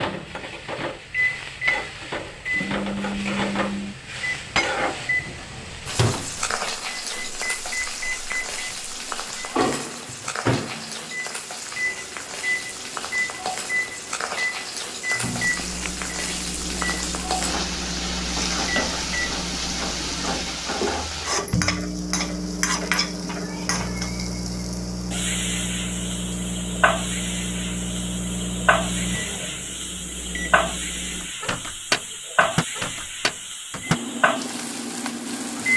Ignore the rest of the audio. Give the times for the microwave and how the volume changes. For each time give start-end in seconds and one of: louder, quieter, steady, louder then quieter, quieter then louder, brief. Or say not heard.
0.0-35.7 steady.